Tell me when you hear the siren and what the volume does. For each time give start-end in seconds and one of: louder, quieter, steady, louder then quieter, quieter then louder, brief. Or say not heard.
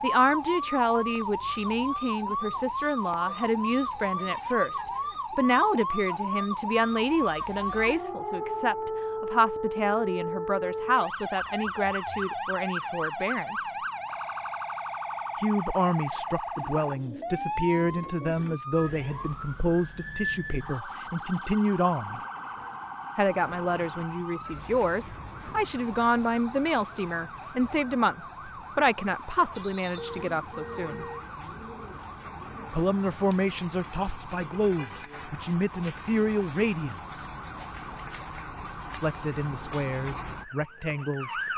0.0-41.5 quieter.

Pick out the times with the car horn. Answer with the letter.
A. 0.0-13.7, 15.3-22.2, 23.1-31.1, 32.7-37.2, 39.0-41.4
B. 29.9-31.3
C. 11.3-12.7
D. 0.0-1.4
B.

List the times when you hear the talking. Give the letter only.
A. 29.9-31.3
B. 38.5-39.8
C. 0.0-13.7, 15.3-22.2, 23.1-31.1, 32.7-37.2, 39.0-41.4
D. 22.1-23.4
C.